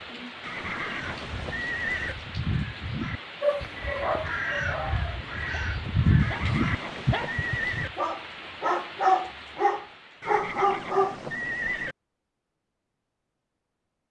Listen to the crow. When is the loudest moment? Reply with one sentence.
The volume of the crow peaks at 6 seconds.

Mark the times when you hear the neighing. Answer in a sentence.
You can hear the neighing from 0.4 to 2.1 s, from 6.2 to 7.9 s and from 10.2 to 11.9 s.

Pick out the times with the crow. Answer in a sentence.
You can hear the crow from 0.6 to 8.0 s.